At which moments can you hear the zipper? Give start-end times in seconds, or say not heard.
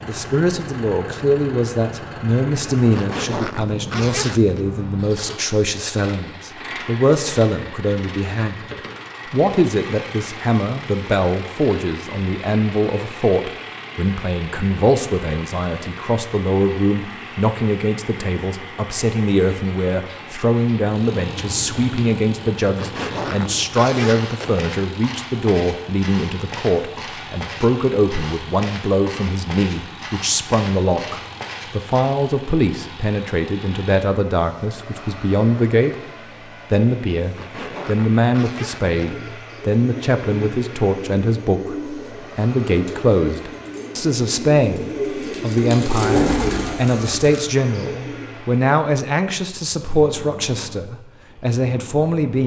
2.9-4.7, 22.8-24.6, 37.4-39.1.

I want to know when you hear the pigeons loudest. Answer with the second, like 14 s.
46 s.